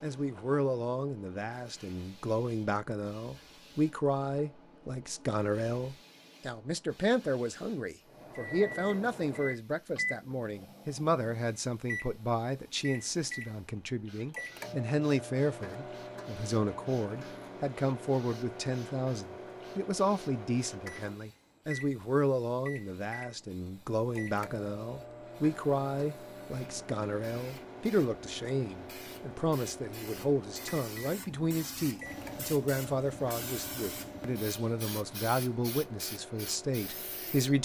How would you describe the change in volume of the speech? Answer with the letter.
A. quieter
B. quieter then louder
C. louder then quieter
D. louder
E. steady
E.